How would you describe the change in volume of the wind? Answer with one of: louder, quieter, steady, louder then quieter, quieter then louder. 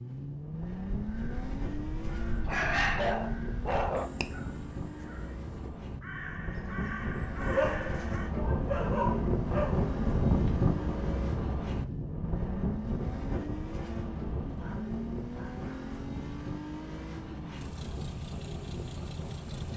louder then quieter.